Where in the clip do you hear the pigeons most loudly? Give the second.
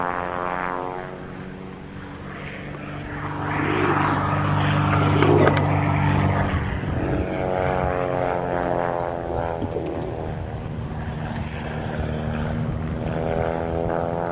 5 s.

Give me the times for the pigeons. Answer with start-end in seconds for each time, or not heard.
3.5-10.3.